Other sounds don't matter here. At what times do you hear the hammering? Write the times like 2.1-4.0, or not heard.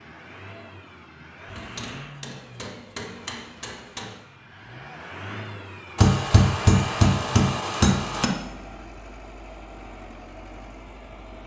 1.4-4.2, 6.0-8.3.